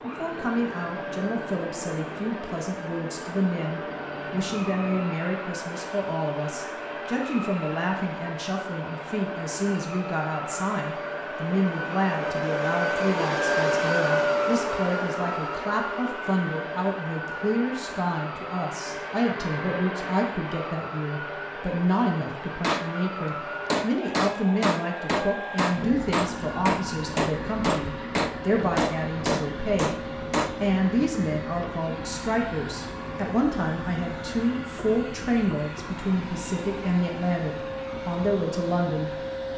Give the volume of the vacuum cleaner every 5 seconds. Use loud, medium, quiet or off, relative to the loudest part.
medium, medium, loud, medium, medium, medium, medium, medium.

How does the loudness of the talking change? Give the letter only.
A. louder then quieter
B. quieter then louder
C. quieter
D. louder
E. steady
E.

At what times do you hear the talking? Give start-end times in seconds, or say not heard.
0.0-39.1.